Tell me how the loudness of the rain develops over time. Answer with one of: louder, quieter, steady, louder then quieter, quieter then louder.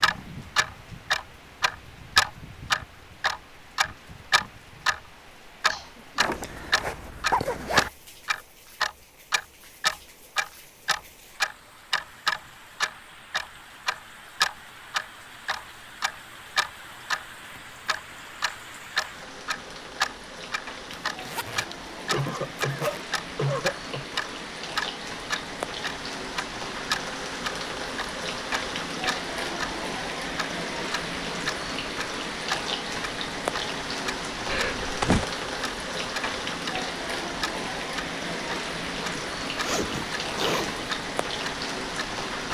louder.